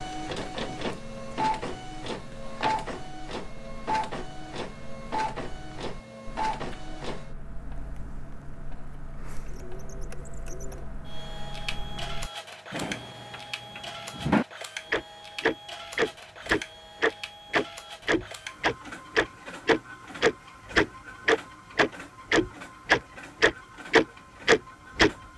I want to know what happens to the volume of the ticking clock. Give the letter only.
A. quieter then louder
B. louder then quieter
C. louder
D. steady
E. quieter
C.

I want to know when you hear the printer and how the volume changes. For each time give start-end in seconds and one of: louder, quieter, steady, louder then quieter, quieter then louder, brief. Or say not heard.
0.0-25.3 quieter.